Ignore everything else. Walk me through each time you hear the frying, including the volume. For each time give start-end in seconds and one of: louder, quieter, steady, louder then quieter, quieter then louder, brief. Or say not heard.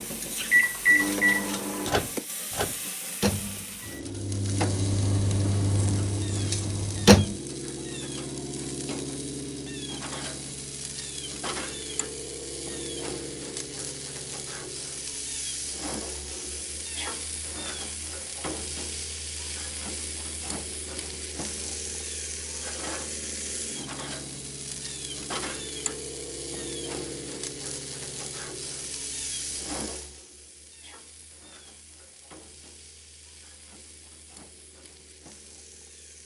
0.0-36.2 quieter.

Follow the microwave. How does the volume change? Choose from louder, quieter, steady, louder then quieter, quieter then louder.
quieter.